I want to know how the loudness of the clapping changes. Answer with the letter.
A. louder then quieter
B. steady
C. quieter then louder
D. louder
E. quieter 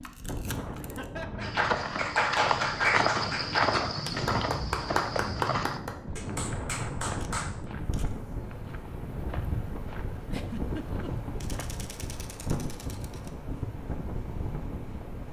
E.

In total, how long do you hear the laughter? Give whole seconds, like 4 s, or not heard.
2 s.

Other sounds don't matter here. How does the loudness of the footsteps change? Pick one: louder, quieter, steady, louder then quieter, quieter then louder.
quieter.